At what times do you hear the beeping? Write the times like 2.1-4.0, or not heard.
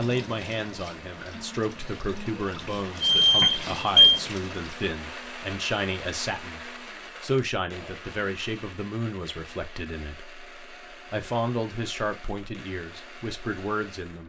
3.0-4.2.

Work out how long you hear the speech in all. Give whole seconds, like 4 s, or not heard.
14 s.